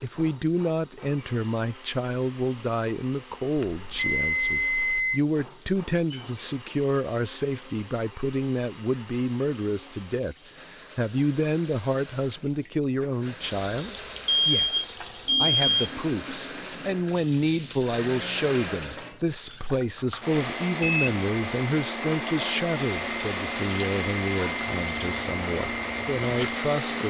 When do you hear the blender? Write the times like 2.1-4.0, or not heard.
0.0-27.0.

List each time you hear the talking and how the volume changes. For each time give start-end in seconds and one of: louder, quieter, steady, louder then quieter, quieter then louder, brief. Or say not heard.
0.0-27.0 steady.